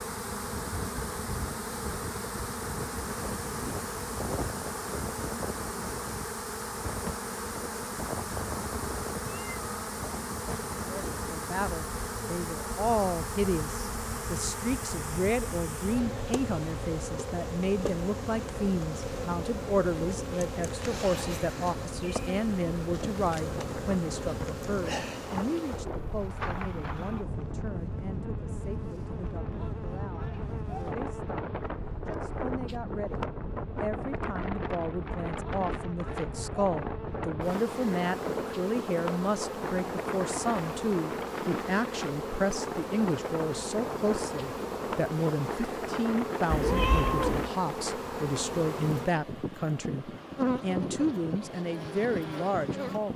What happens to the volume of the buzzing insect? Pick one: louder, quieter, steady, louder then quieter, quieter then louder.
steady.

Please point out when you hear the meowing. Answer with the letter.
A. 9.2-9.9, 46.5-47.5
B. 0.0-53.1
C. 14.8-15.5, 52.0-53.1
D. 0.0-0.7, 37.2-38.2
A.